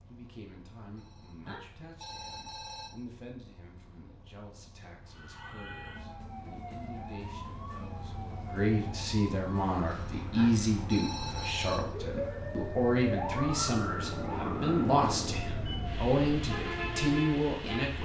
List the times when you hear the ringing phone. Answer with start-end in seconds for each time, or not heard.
0.9-2.9, 9.8-11.8.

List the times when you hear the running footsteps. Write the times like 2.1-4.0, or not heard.
not heard.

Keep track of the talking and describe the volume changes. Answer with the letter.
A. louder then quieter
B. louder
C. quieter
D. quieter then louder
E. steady
B.